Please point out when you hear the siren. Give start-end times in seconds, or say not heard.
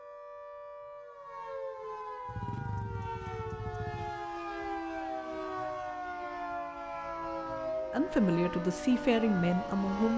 0.0-10.1.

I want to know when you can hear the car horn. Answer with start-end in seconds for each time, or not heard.
not heard.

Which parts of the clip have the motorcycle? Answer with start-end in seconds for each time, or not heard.
2.2-4.2.